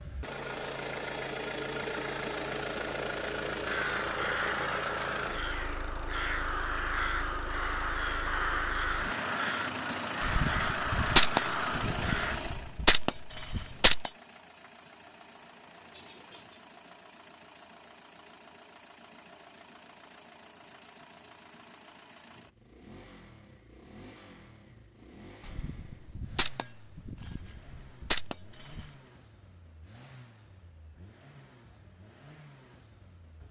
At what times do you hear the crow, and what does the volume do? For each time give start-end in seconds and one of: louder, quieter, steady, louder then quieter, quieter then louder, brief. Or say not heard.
3.6-12.4 steady.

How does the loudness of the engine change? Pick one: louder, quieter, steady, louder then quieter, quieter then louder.
quieter.